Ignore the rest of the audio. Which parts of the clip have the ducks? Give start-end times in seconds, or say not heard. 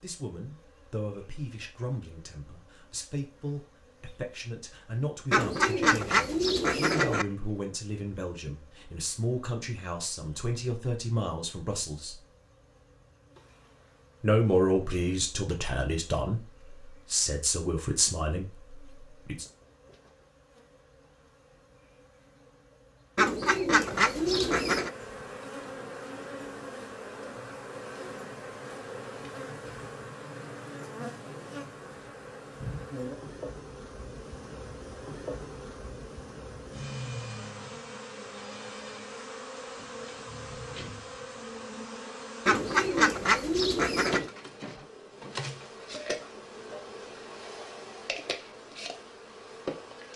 5.3-7.2, 23.1-24.9, 42.5-44.3.